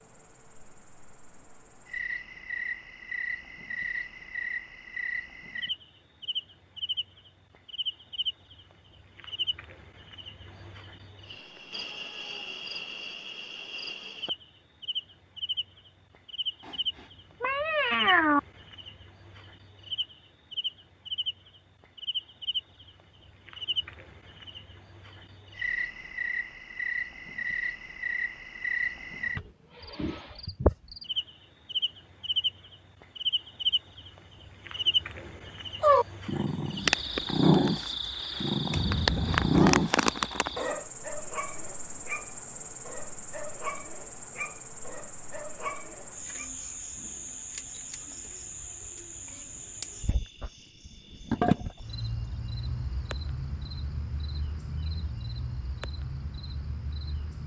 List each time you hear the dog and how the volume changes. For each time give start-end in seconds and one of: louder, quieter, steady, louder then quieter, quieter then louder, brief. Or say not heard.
35.8-46.5 quieter.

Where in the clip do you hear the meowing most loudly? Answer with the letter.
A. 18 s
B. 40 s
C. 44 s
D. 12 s
A.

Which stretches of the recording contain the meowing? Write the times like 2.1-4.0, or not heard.
16.6-18.4, 38.7-39.6.